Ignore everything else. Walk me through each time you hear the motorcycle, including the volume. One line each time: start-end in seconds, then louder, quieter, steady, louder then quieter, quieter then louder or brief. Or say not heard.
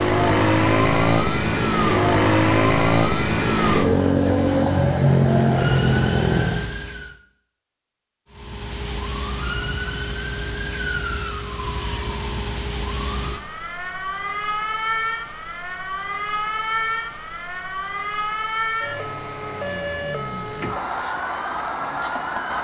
0.0-6.7 steady.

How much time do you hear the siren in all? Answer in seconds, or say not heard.
21 s.